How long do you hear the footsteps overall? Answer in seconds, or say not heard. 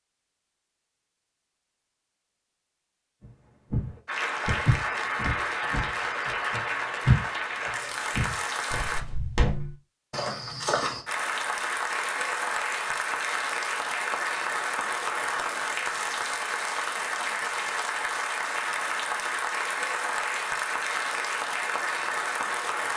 8 s.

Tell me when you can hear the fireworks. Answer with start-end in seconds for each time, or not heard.
not heard.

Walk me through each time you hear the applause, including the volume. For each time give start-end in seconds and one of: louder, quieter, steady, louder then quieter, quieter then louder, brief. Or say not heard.
4.0-9.1 steady
11.1-22.9 steady.